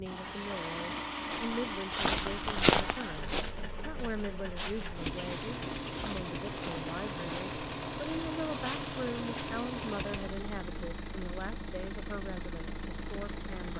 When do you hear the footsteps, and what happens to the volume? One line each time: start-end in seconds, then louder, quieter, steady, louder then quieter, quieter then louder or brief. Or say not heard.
1.2-9.7 quieter.